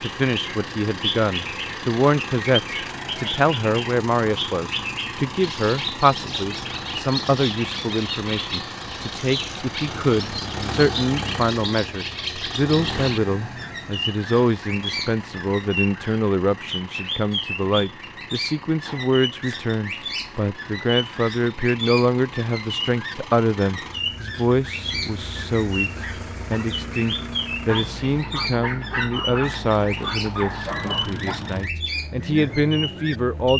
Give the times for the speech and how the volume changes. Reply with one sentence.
The speech can be heard from 0.0 to 33.5 s, at a steady volume.